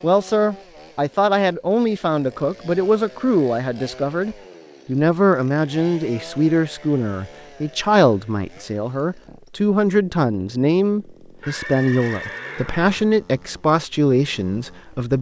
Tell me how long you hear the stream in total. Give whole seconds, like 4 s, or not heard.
not heard.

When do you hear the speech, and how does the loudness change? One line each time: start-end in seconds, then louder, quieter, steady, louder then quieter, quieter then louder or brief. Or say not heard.
0.0-15.1 steady.